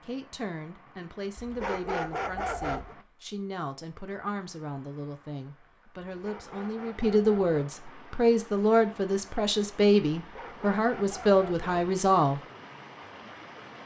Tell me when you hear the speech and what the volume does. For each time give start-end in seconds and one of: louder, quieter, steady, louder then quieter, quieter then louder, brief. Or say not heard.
0.0-12.4 louder.